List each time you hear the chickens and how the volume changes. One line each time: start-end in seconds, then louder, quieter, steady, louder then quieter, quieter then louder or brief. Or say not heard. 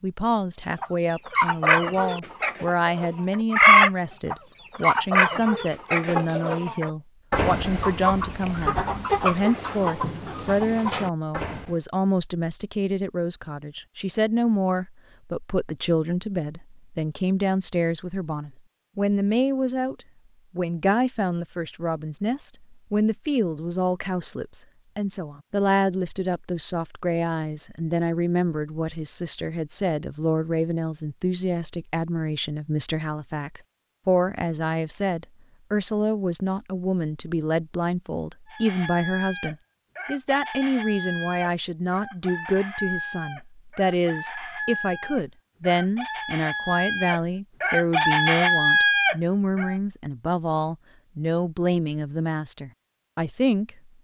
0.8-11.8 louder then quieter
38.5-49.8 louder.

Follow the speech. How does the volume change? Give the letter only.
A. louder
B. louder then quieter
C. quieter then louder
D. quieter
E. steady
E.